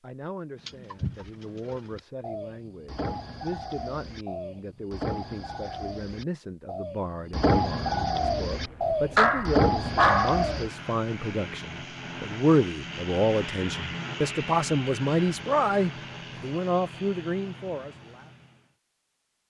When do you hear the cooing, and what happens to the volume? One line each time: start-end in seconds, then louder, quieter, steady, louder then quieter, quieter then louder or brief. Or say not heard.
0.6-10.7 louder.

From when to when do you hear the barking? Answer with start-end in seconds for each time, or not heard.
9.2-10.4.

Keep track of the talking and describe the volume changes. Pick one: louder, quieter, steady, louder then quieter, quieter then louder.
louder.